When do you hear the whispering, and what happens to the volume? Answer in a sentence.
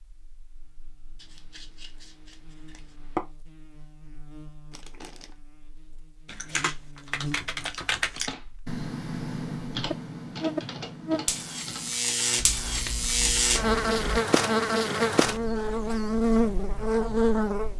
The whispering can't be heard in this clip.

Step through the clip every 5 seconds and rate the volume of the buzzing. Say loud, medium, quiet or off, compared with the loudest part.
quiet, quiet, loud, loud.